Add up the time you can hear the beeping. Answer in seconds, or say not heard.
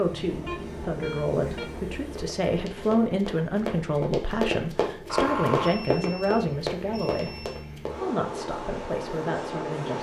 5 s.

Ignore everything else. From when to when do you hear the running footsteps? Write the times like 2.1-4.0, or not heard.
2.0-7.9.